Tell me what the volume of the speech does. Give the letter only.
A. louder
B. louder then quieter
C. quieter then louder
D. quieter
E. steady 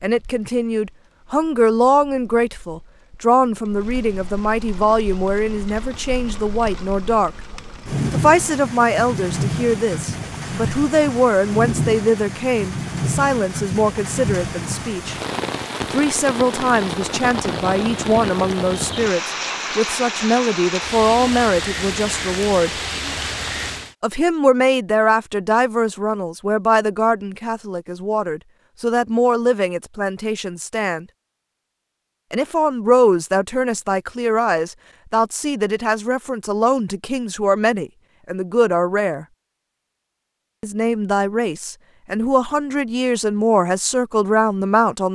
E.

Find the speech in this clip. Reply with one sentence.
The speech can be heard from 0.0 to 7.3 s, from 8.1 to 15.2 s, from 15.9 to 22.7 s, from 24.0 to 31.1 s, from 32.3 to 39.2 s and from 40.6 to 45.1 s.